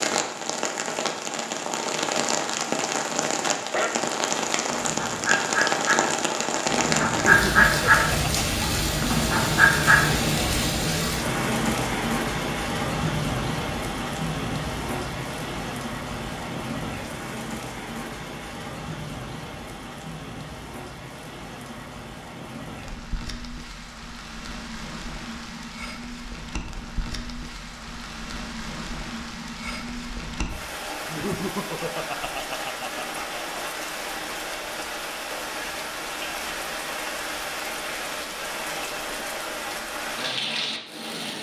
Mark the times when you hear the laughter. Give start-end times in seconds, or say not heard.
7.1-8.6, 31.1-33.6.